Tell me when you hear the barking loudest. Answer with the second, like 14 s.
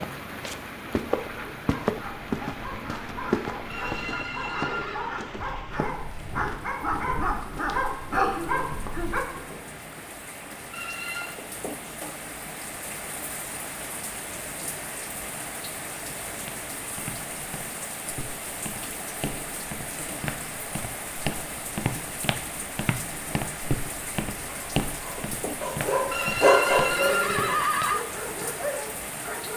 27 s.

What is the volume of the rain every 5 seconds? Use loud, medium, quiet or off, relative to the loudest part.
loud, medium, loud, loud, loud, loud.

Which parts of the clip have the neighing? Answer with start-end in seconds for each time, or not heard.
3.6-5.2, 10.7-11.4, 26.1-28.1.